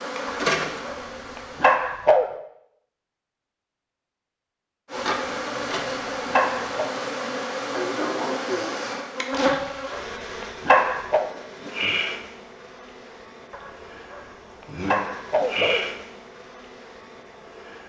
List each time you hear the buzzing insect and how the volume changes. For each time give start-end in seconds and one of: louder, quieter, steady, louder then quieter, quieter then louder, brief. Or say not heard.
0.0-1.8 brief
4.9-17.8 quieter then louder.